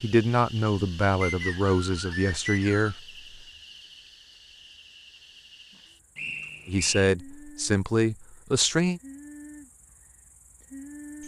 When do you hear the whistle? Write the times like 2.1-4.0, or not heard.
1.2-3.0, 6.2-7.1.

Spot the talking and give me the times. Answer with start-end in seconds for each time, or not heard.
0.0-3.4, 6.7-9.0.